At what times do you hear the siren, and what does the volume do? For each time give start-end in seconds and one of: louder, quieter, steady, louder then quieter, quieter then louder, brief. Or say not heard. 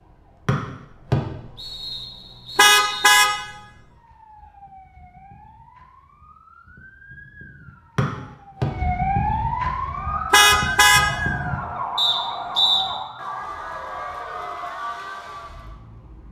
0.0-16.2 louder then quieter.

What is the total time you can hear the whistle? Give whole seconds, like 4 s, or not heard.
4 s.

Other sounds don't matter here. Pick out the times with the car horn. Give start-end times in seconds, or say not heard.
2.5-3.3, 10.3-11.1.